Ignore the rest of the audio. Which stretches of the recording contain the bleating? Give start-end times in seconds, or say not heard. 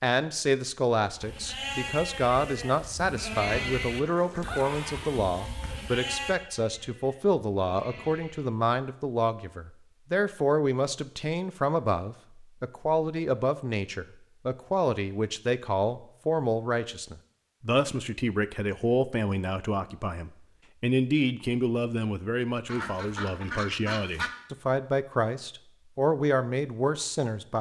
1.1-8.7.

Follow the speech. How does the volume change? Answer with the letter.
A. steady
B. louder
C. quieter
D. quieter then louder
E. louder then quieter
A.